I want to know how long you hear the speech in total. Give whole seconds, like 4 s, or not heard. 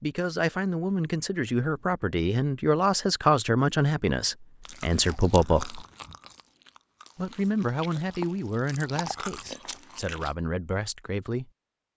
10 s.